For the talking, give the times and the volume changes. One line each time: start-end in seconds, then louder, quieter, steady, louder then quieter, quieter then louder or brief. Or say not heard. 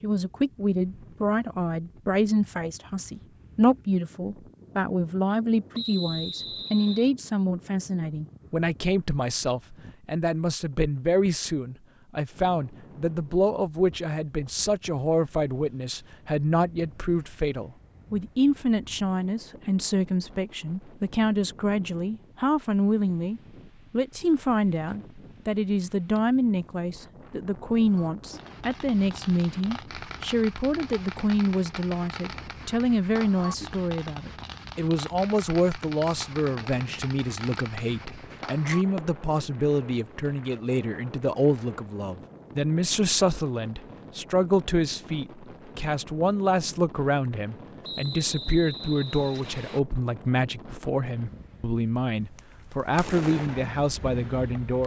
0.0-54.8 steady.